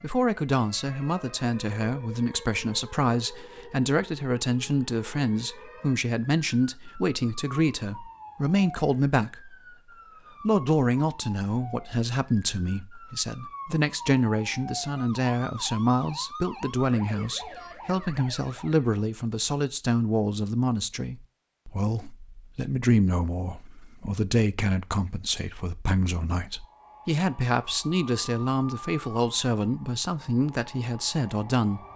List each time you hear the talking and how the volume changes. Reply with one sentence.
You can hear the talking from 0.0 to 9.6 s, at a steady volume; and from 10.4 to 31.9 s, at a steady volume.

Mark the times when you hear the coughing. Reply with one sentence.
You can't hear the coughing here.